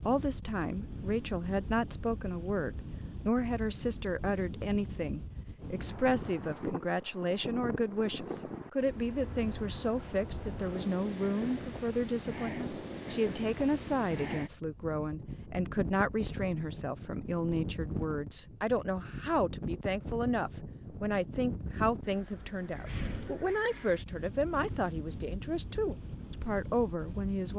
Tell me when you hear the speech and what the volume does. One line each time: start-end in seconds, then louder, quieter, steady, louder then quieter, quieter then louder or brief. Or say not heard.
0.0-27.5 steady.